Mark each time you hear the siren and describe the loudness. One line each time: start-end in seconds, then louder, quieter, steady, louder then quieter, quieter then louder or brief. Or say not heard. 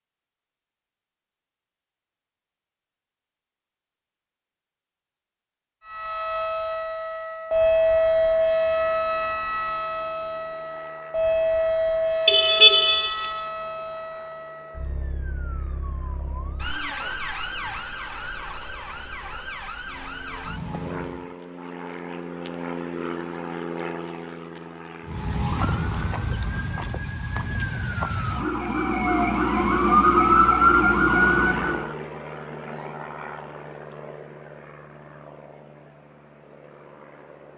5.8-21.4 quieter
25.1-31.9 louder.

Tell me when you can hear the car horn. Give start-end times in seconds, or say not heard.
12.2-13.3.